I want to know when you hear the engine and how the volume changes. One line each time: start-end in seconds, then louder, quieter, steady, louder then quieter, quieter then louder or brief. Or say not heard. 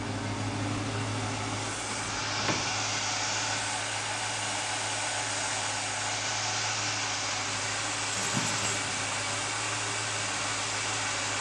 0.0-11.3 steady.